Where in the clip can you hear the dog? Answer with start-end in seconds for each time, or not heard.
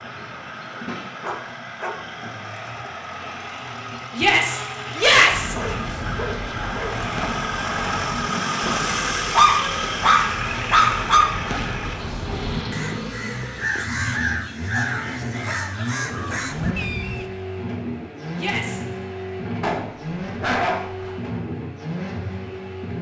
1.2-1.9, 5.5-7.0, 9.3-11.2, 15.4-16.8, 19.6-21.2.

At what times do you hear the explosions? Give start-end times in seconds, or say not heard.
not heard.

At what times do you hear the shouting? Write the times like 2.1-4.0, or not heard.
4.2-5.5, 18.4-18.8.